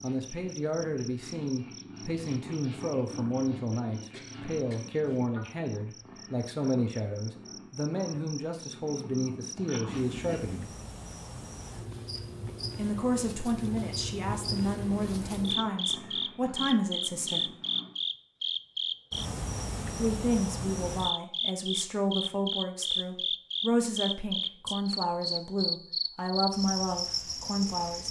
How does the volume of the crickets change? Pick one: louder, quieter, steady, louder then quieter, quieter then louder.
louder.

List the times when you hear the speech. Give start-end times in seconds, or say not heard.
0.0-10.7, 12.8-17.5, 20.0-28.0.